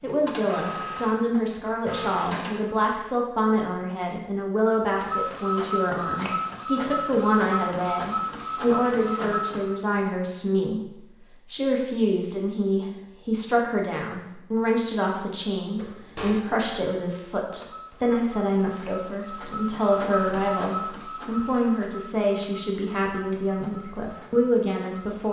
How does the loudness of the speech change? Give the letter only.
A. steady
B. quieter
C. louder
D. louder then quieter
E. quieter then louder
A.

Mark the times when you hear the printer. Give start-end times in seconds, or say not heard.
0.0-2.9, 4.9-9.8, 15.6-25.2.